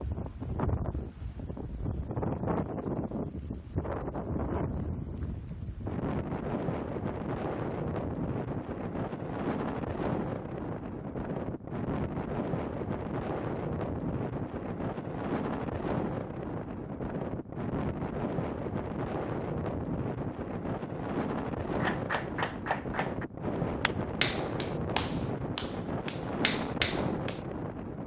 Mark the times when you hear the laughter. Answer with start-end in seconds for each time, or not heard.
not heard.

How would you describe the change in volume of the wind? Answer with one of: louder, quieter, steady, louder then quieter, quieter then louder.
steady.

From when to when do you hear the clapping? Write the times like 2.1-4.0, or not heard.
21.8-27.4.